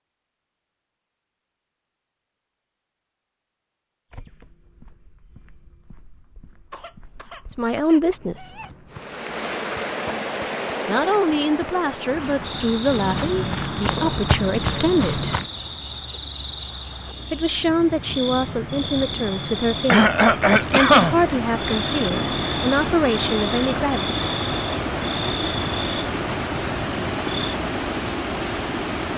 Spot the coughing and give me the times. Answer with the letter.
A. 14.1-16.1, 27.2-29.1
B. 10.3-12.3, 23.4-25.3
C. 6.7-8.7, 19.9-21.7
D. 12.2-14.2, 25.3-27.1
C.